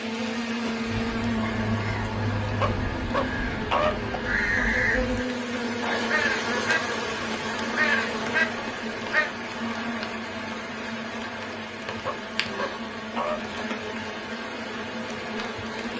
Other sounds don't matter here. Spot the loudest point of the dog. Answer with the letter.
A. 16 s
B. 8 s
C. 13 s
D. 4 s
D.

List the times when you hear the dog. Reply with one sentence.
You can hear the dog from 2.6 to 4.1 s and from 12.1 to 13.6 s.